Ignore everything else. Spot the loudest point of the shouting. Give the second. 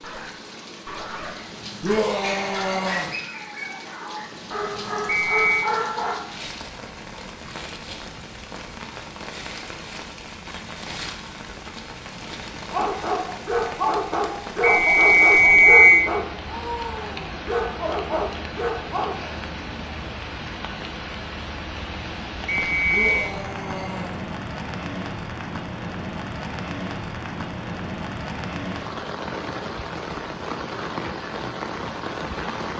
2 s.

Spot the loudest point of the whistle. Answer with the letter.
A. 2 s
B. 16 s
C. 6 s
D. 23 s
B.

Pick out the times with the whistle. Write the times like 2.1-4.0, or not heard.
5.0-5.7, 14.6-16.1, 22.4-23.1.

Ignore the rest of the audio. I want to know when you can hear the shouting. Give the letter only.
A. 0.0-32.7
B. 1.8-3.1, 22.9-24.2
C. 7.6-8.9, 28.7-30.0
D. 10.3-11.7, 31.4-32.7
B.